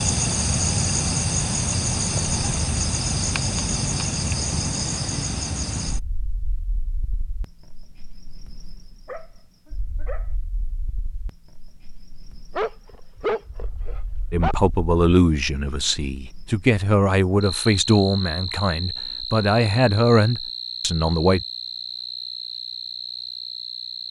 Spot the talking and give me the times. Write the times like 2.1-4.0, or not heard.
14.3-21.4.